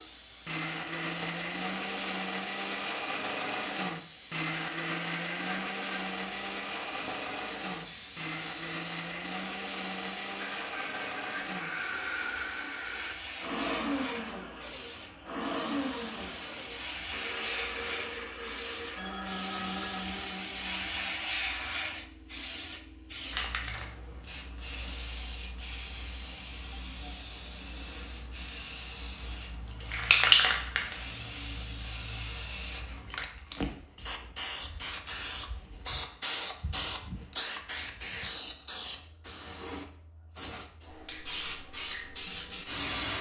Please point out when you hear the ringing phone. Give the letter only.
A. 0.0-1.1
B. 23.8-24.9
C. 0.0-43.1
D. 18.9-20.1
D.